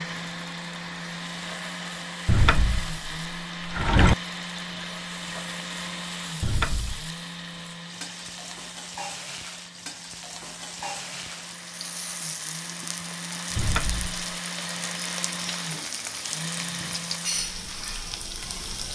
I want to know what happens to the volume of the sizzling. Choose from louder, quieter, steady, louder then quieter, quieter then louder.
louder.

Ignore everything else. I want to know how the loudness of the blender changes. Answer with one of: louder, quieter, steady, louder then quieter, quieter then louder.
quieter then louder.